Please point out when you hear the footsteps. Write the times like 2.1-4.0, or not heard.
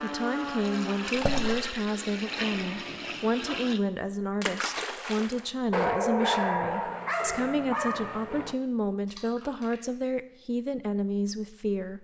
not heard.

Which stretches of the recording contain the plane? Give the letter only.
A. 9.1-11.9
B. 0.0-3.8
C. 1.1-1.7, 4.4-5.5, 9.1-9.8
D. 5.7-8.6
B.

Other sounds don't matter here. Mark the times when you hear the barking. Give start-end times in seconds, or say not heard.
5.7-8.6.